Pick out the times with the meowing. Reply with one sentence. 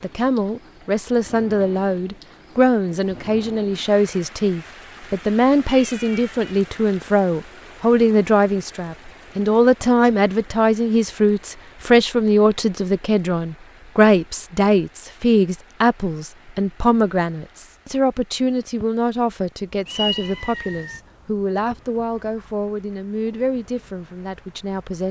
You can hear the meowing from 5.7 to 6.4 s and from 19.9 to 21.0 s.